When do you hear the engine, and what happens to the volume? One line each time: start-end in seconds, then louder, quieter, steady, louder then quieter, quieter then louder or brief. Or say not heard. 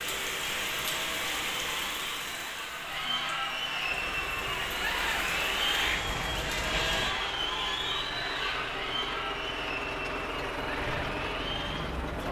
3.9-12.2 louder.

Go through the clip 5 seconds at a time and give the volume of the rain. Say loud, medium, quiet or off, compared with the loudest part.
loud, loud, off.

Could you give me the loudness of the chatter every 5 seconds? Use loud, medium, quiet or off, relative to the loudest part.
loud, loud, medium.